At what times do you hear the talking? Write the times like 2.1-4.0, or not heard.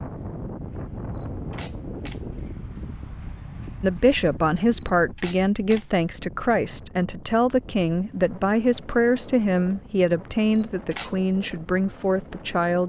3.8-12.8.